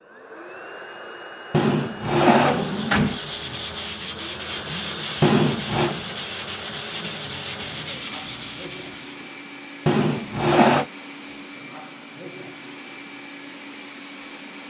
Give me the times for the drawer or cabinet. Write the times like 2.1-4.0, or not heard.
1.5-3.2, 5.2-6.0, 9.8-10.8.